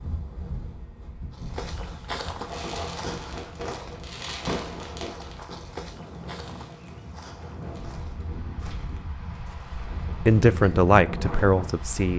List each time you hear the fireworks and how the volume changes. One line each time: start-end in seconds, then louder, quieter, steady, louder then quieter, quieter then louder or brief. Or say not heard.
2.4-8.1 quieter.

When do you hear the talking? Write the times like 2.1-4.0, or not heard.
10.2-12.1.